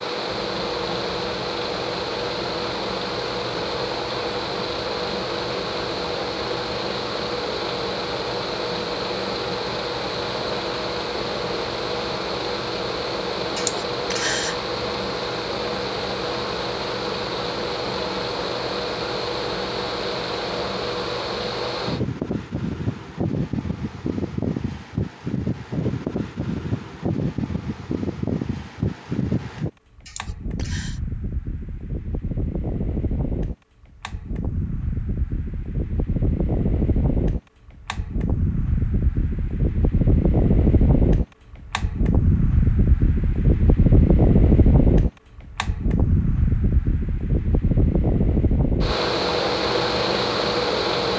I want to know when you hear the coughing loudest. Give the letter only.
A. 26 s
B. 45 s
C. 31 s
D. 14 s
D.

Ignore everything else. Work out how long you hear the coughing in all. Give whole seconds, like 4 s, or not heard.
2 s.